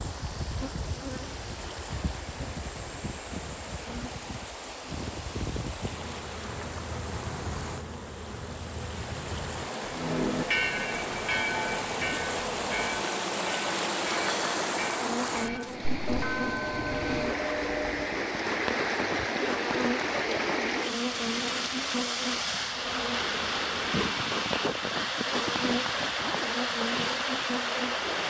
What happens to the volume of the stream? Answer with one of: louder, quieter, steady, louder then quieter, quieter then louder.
louder.